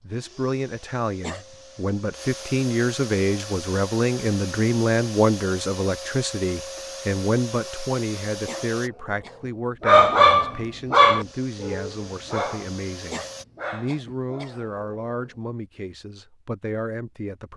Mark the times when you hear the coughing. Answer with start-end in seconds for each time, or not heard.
1.1-1.6, 8.3-9.5, 13.1-14.6.